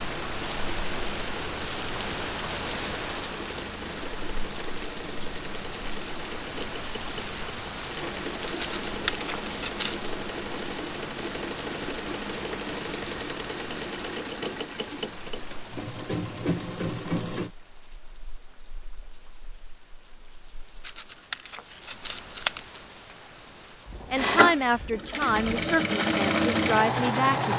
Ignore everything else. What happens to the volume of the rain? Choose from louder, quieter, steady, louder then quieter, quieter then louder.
quieter.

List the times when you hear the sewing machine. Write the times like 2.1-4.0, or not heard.
0.0-17.5, 24.1-27.5.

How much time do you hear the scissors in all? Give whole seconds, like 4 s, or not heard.
3 s.